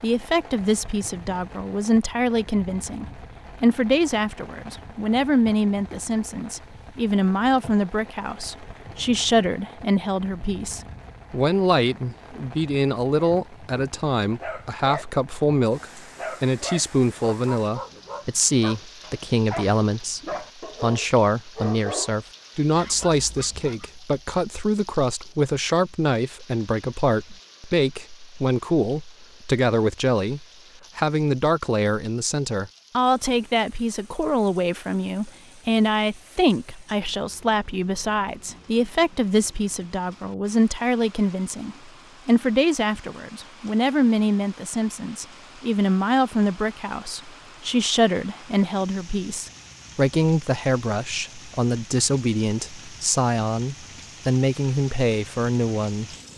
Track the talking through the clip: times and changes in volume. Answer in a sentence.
The talking can be heard from 0.0 to 20.2 s, at a steady volume; and from 20.8 to 56.1 s, at a steady volume.